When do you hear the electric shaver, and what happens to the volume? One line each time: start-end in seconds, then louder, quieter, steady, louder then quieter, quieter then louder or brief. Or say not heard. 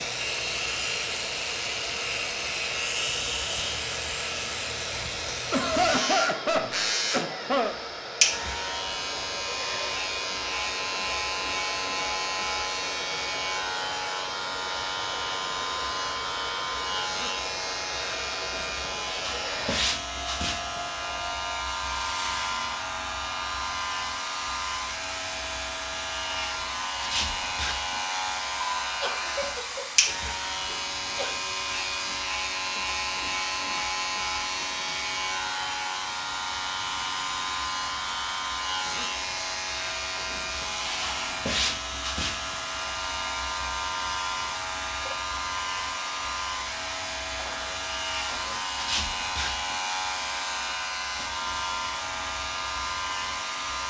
0.0-53.8 steady.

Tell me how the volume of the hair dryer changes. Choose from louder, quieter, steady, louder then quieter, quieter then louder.
steady.